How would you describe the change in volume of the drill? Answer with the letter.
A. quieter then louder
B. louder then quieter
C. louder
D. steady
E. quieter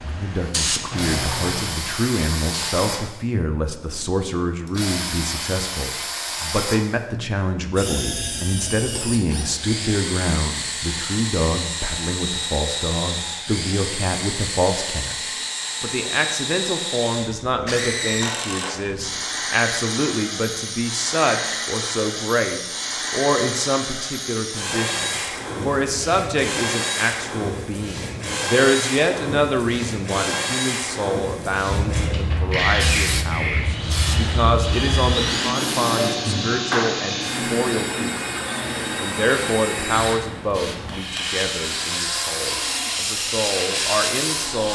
D.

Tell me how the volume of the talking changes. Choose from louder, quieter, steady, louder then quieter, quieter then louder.
steady.